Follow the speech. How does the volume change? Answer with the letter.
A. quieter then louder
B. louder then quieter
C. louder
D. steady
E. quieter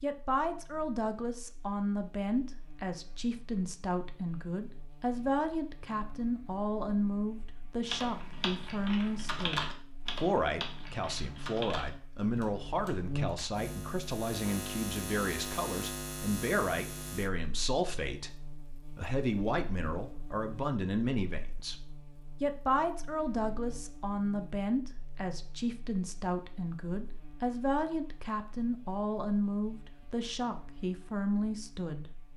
D.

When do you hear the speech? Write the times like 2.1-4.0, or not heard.
0.0-32.1.